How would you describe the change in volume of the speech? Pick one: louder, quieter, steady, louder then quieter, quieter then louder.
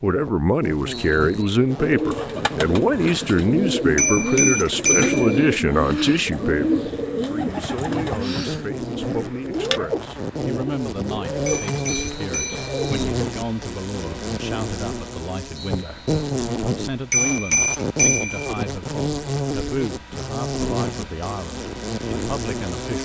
quieter.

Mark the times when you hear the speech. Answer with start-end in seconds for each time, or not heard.
0.0-22.9.